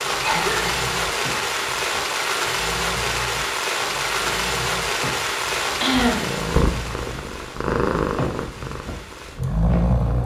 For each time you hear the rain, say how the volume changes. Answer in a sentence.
You can hear the rain from 0.0 to 10.2 s, getting quieter.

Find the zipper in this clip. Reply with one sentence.
You can't hear the zipper here.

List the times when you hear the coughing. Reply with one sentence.
You can hear the coughing from 0.1 to 1.1 s and from 5.8 to 6.2 s.